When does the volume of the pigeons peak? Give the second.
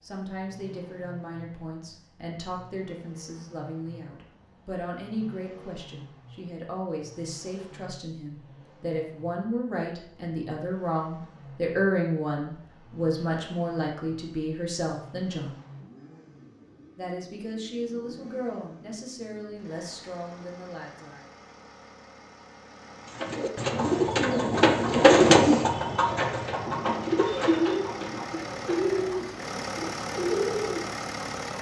25 s.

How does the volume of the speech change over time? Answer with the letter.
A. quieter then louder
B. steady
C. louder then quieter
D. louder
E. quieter
C.